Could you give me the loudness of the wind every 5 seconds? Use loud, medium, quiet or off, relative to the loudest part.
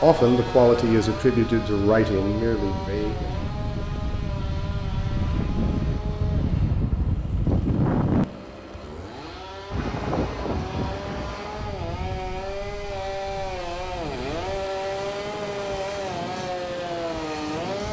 medium, loud, medium, medium.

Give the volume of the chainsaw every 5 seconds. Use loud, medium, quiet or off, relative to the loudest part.
medium, medium, loud, loud.